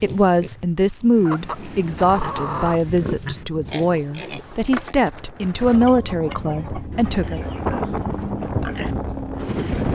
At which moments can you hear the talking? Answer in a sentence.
You can hear the talking from 0.0 to 7.4 s.